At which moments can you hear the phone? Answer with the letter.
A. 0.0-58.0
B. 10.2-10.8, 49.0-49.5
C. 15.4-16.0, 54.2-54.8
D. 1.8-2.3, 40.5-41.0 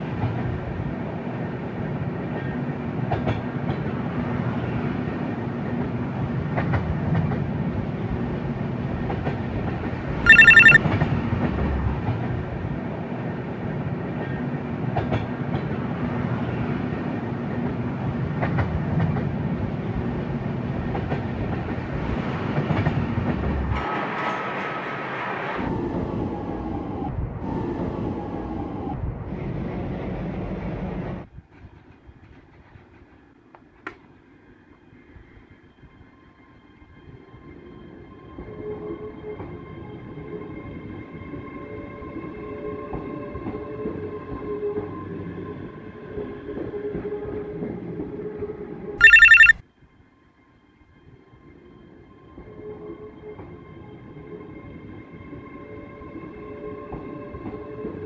B.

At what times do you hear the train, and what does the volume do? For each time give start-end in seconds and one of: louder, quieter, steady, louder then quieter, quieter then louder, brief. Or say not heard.
0.0-58.0 quieter.